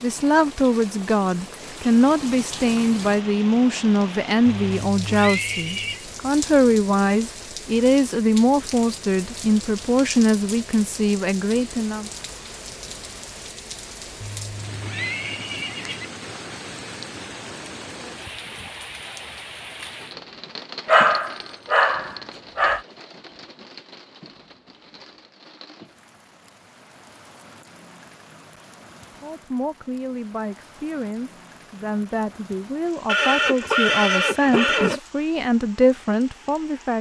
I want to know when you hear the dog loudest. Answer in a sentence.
The volume of the dog peaks at 21 seconds.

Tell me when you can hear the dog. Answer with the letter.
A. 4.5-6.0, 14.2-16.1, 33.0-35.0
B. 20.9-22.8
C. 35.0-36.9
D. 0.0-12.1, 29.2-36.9
B.